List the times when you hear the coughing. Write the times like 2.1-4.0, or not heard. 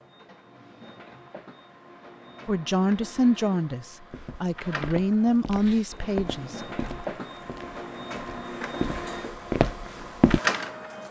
not heard.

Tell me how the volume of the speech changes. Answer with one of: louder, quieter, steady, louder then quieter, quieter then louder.
quieter then louder.